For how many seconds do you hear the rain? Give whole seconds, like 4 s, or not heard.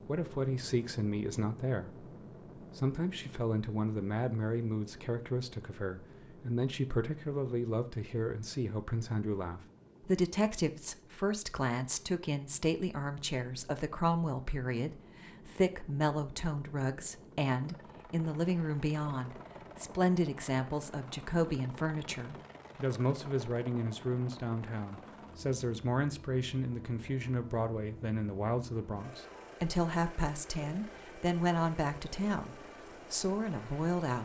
not heard.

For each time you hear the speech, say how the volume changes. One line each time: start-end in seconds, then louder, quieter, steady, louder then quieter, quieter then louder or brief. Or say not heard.
0.1-34.1 steady.